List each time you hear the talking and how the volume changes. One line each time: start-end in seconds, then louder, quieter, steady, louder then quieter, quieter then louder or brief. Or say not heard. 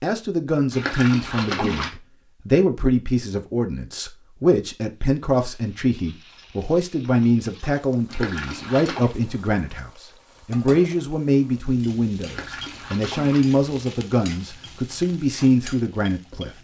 0.0-16.5 steady.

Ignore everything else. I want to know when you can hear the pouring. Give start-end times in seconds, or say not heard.
0.7-1.9, 8.1-9.2, 12.2-13.4.